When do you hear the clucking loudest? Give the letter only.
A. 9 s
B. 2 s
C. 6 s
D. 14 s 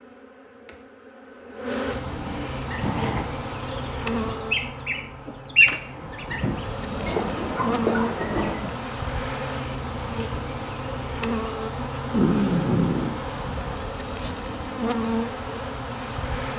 C.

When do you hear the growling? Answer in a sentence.
You can hear the growling from 1.9 to 3.4 s, from 6.8 to 8.8 s and from 12.1 to 13.2 s.